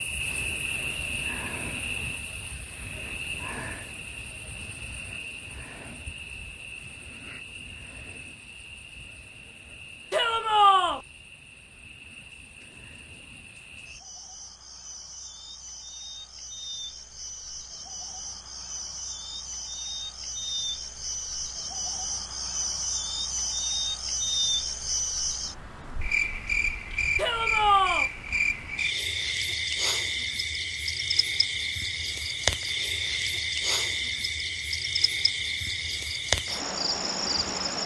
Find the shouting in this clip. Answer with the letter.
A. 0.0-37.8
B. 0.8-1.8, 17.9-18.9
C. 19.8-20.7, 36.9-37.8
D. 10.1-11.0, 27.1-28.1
D.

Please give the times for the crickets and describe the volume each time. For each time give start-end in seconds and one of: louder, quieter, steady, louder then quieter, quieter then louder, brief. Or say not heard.
0.0-37.8 quieter then louder.